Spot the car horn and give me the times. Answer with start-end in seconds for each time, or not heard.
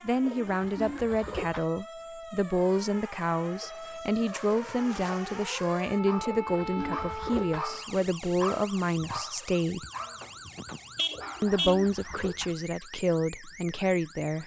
10.2-11.8.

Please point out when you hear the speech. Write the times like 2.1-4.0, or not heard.
0.0-9.8, 11.4-14.4.